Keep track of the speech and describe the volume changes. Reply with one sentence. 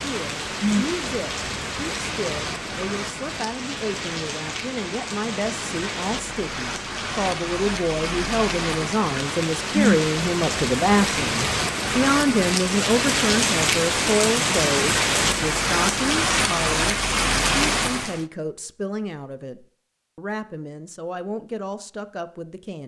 The volume of the speech goes up, then down.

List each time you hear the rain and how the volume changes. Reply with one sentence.
You can hear the rain from 0.0 to 18.2 s, getting louder.